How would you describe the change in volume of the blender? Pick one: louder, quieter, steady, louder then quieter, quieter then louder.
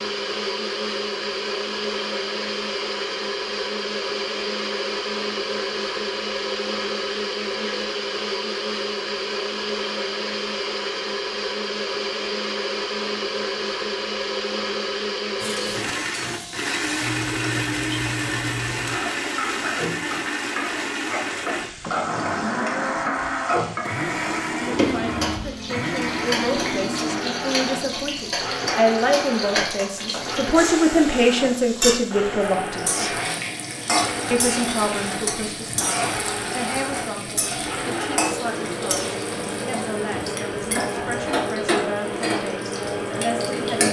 steady.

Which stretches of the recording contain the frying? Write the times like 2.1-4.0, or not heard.
15.4-43.8.